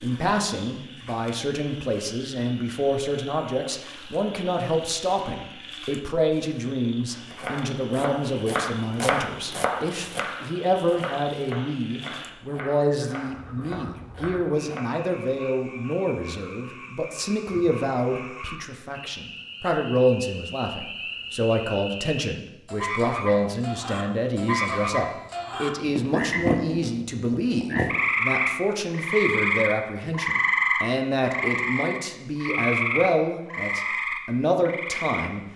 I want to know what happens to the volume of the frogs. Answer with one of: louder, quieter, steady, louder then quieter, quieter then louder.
louder.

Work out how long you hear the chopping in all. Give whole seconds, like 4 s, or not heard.
8 s.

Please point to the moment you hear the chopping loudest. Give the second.
9 s.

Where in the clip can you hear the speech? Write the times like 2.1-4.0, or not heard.
0.0-35.4.